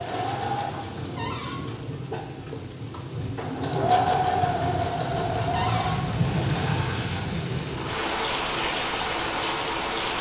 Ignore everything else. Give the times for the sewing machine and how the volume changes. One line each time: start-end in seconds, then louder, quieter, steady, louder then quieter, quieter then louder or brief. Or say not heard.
0.0-10.1 louder then quieter.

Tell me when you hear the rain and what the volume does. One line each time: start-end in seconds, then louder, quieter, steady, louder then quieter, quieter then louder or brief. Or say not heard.
0.0-10.1 louder.